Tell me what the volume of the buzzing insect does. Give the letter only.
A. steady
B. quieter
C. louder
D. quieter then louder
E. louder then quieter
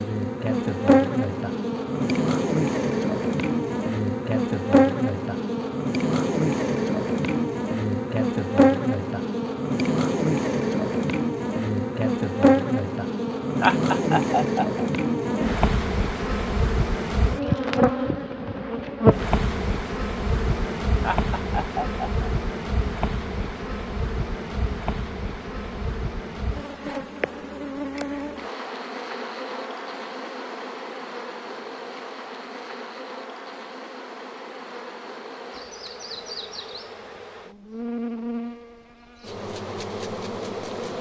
B.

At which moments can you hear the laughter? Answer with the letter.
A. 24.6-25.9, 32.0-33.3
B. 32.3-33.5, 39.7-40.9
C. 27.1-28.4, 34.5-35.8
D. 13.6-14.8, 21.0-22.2
D.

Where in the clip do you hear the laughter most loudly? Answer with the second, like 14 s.
14 s.